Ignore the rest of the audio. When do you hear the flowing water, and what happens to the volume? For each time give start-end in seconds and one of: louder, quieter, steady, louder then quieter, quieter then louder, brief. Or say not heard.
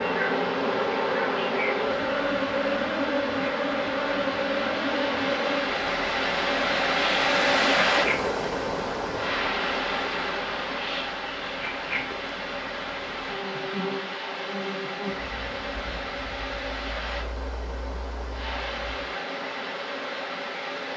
0.0-20.9 louder then quieter.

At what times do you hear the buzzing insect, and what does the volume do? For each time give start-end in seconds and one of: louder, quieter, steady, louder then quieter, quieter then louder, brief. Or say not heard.
0.0-20.9 quieter.